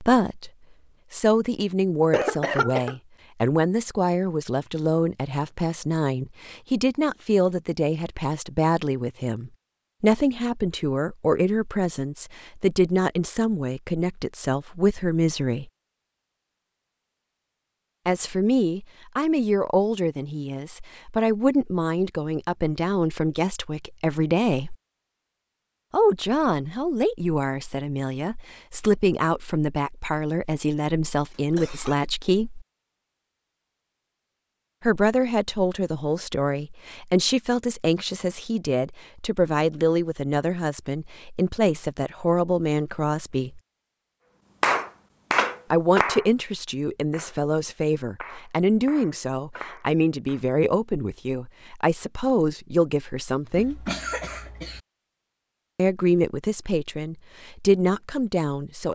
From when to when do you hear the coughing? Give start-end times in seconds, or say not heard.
2.1-3.0, 31.3-31.9, 53.5-54.8.